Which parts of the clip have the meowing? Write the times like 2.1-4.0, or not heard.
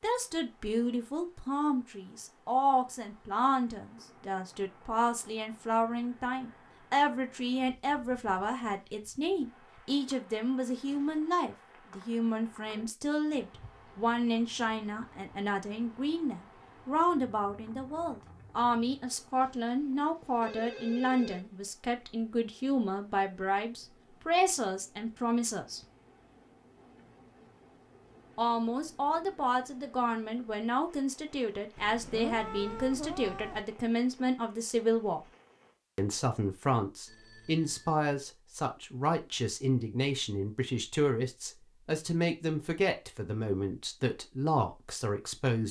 31.8-33.6.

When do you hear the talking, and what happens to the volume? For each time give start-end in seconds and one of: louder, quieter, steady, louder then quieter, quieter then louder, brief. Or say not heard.
0.0-25.8 steady
28.4-35.2 steady
36.0-45.6 steady.